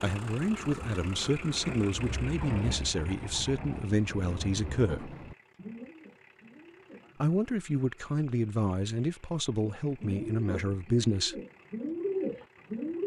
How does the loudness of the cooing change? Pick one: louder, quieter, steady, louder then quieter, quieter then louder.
louder.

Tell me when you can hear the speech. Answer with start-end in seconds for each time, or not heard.
0.0-5.2, 7.2-11.4.